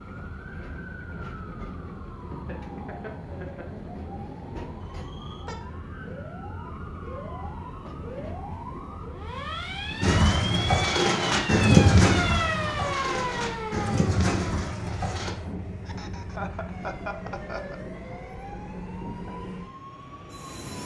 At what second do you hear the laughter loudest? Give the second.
17 s.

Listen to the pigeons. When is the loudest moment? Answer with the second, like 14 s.
12 s.